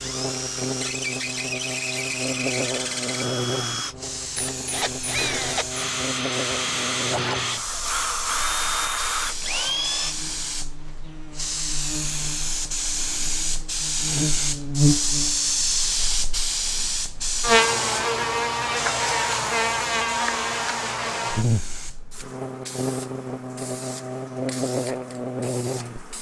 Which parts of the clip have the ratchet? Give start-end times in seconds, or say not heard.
not heard.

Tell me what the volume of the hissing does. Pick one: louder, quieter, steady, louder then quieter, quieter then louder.
louder then quieter.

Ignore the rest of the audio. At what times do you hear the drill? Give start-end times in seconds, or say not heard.
0.0-10.2.